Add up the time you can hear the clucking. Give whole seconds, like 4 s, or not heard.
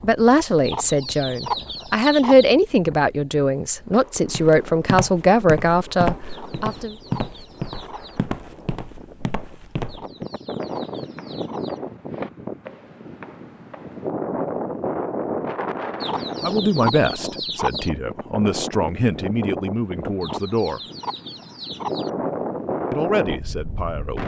10 s.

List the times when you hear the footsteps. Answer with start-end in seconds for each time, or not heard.
4.2-14.1.